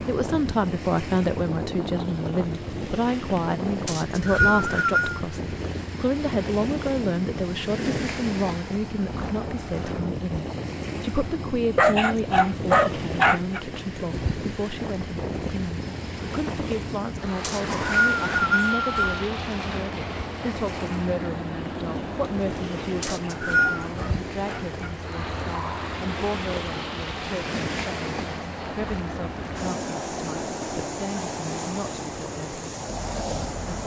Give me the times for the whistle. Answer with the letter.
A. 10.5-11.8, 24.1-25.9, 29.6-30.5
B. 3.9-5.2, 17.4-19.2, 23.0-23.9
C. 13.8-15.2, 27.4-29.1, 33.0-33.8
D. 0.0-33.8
B.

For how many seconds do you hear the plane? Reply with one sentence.
You can hear the plane for 34 seconds altogether.